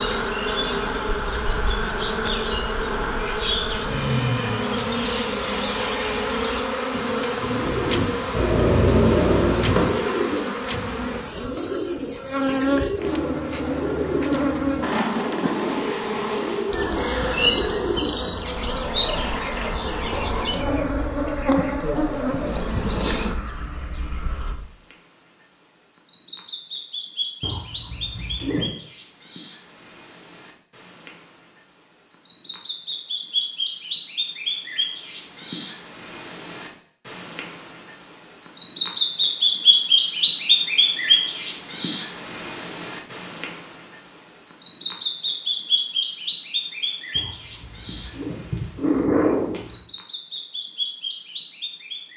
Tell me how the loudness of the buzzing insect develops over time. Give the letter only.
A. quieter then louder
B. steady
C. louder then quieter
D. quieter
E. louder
B.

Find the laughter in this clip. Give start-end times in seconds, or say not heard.
not heard.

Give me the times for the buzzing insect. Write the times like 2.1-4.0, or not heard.
0.0-23.4.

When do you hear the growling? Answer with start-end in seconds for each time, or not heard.
8.3-9.9, 27.4-28.7, 47.1-49.8.